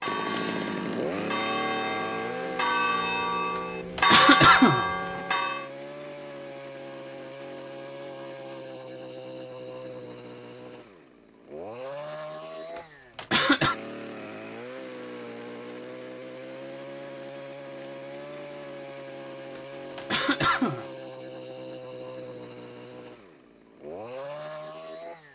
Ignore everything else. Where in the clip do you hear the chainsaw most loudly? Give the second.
1 s.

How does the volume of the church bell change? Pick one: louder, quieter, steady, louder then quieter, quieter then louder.
louder.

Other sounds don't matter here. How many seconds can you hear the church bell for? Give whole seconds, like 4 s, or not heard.
6 s.